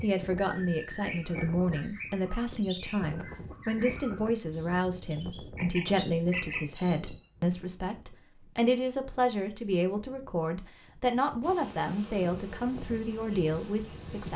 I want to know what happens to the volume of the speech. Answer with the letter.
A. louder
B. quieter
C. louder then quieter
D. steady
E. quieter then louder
D.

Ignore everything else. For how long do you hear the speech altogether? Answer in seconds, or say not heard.
14 s.